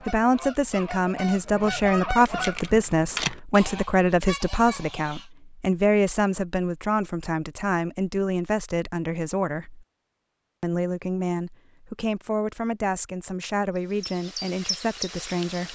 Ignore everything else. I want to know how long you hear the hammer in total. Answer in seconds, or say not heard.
not heard.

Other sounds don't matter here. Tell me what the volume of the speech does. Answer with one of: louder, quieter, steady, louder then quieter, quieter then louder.
quieter.